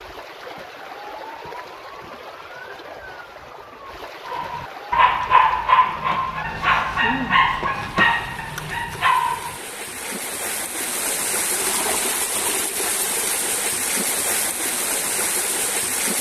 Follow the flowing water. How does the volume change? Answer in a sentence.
The volume of the flowing water goes up.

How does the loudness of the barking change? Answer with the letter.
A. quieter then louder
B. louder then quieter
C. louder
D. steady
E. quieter
E.